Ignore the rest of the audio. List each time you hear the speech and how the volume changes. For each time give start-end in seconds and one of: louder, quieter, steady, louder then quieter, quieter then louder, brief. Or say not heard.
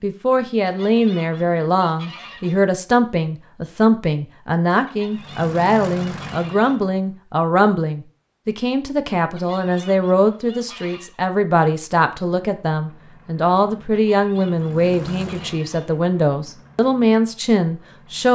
0.0-18.3 steady.